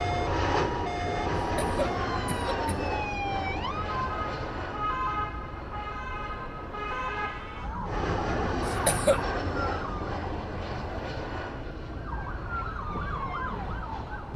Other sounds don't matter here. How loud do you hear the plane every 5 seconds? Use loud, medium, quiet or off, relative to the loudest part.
loud, loud, medium.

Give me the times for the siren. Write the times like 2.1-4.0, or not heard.
0.0-10.2, 11.9-14.3.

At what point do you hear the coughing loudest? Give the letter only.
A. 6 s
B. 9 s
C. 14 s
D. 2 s
B.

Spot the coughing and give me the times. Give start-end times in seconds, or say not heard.
1.4-2.8, 8.7-9.2.